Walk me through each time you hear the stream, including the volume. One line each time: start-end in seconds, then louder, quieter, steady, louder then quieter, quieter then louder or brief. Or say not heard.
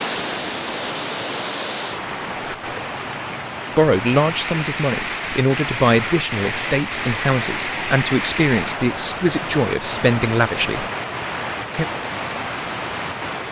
0.0-13.4 steady.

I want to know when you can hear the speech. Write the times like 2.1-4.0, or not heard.
3.8-10.8.